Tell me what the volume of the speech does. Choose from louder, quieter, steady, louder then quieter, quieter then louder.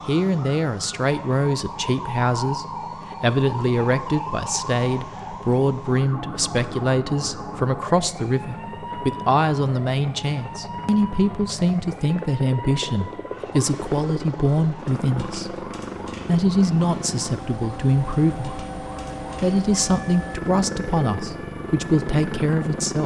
steady.